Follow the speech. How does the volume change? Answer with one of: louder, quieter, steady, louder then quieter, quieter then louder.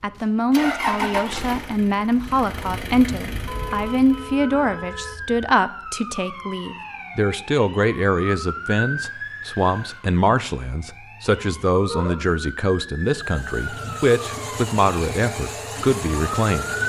steady.